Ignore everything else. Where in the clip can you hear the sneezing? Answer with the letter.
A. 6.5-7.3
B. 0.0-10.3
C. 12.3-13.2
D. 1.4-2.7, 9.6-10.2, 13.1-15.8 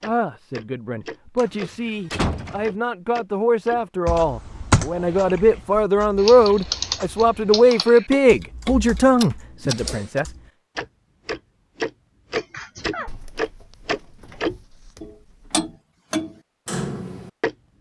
C.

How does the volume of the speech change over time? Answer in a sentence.
The volume of the speech goes up.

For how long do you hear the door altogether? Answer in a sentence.
You can hear the door for 5 seconds altogether.